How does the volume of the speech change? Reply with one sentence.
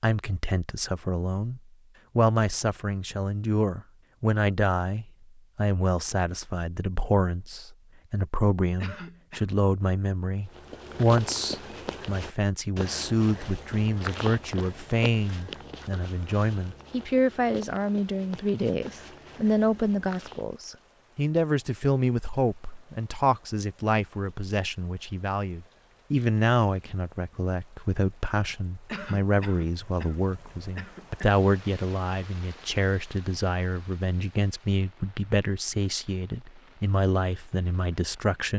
The loudness of the speech stays about the same.